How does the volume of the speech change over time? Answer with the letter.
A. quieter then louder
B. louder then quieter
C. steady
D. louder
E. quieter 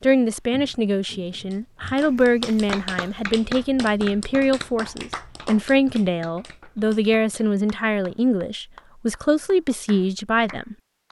C.